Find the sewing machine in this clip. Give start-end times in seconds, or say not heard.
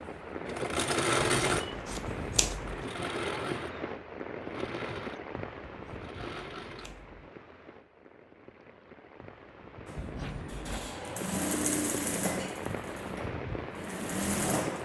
0.0-6.9, 9.8-14.8.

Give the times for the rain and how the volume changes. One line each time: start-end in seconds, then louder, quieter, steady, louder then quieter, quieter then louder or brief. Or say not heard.
0.0-14.8 quieter then louder.